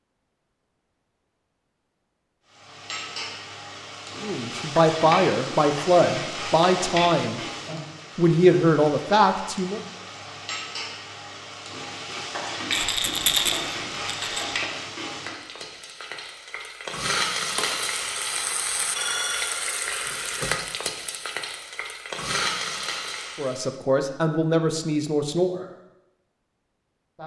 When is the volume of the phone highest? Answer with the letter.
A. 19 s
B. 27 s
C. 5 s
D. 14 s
A.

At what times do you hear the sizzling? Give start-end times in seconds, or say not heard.
2.5-23.8.